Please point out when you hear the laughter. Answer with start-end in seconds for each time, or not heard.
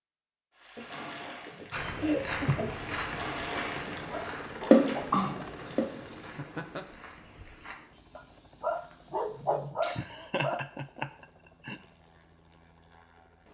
0.8-2.8, 5.2-6.8, 9.8-11.8.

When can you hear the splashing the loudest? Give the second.
5 s.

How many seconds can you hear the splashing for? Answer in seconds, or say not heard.
5 s.